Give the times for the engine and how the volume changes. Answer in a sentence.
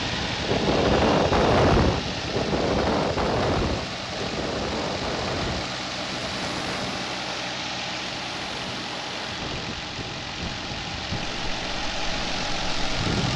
You can hear the engine from 0.0 to 13.3 s, at a steady volume.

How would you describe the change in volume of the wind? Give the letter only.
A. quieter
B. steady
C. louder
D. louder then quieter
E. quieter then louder
A.